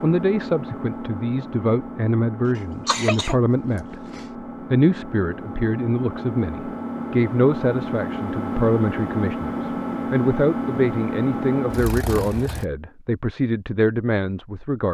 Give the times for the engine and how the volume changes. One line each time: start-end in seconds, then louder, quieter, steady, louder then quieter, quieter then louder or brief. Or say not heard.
0.0-12.7 louder.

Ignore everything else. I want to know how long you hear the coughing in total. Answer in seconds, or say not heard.
2 s.